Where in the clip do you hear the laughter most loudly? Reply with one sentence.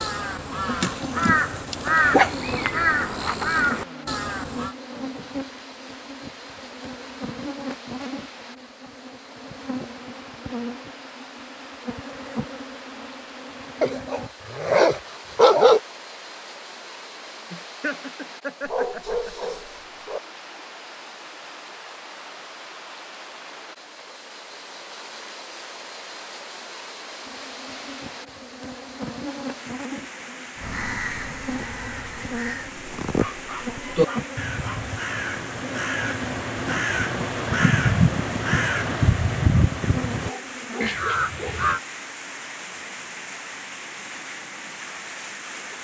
The volume of the laughter peaks at 18 seconds.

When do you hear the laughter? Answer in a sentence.
The laughter can be heard from 17.5 to 19.6 s.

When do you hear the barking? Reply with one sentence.
You can hear the barking from 0.8 to 2.3 s, from 13.8 to 15.8 s, from 18.6 to 20.2 s, from 33.1 to 34.9 s and from 40.2 to 41.6 s.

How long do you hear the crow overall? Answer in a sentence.
The crow can be heard for 16 seconds in total.